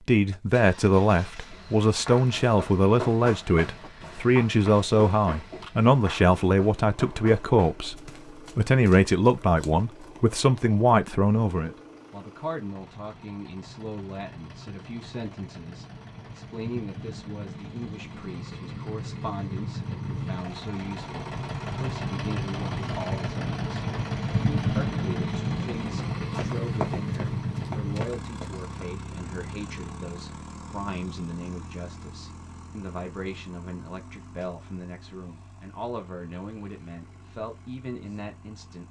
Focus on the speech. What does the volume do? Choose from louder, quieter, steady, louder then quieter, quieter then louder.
quieter.